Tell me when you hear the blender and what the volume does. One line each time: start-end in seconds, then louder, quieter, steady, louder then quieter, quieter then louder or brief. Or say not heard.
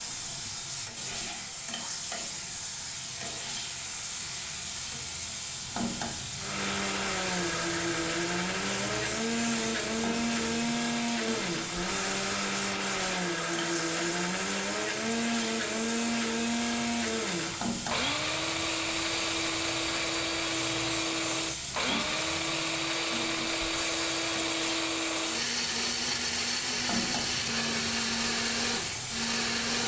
6.3-29.8 steady.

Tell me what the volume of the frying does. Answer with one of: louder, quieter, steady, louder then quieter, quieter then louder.
steady.